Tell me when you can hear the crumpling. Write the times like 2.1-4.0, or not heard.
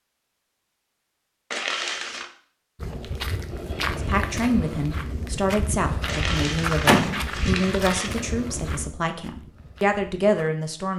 1.5-2.3, 6.0-8.1.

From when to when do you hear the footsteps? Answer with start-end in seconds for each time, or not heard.
2.8-10.5.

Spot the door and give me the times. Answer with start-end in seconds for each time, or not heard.
6.3-7.3.